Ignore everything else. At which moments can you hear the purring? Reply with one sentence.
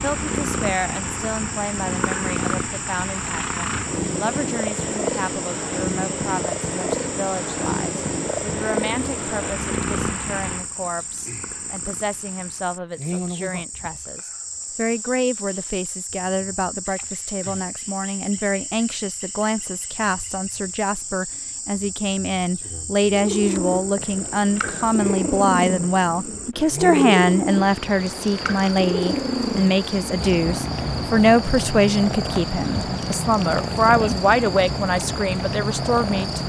You can hear the purring from 0.0 to 12.9 s and from 23.0 to 36.4 s.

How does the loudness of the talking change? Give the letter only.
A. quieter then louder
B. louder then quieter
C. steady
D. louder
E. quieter
D.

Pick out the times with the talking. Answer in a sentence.
The talking can be heard from 0.0 to 36.4 s.